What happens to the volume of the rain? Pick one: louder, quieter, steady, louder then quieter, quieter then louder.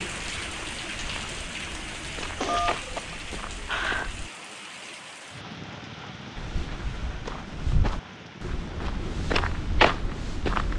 quieter.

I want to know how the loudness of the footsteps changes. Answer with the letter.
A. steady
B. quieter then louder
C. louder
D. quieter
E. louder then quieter
C.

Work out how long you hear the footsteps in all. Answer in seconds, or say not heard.
9 s.